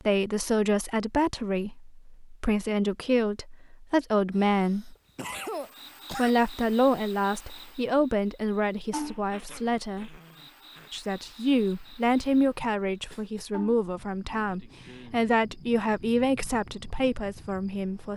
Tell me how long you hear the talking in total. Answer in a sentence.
The talking can be heard for 16 seconds in total.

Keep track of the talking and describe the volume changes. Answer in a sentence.
The volume of the talking stays about the same.